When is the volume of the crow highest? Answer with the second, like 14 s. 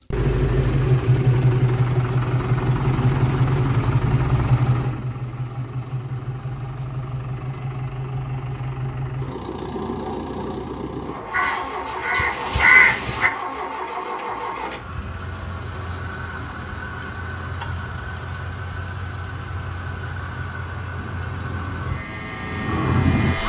13 s.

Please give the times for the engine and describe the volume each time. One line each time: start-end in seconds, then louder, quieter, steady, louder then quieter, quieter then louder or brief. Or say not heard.
0.0-23.4 quieter.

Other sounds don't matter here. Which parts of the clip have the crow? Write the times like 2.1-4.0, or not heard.
11.3-13.3, 20.9-23.4.